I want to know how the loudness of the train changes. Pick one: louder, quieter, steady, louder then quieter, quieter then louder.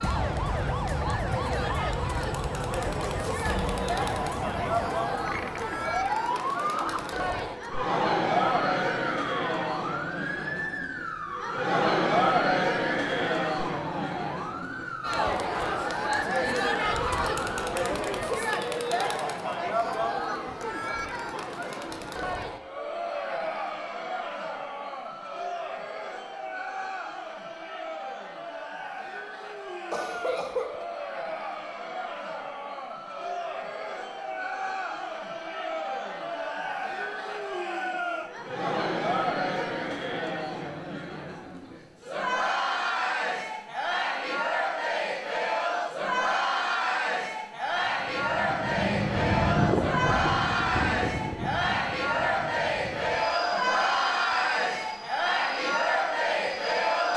quieter.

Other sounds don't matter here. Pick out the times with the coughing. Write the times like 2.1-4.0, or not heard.
29.9-30.9.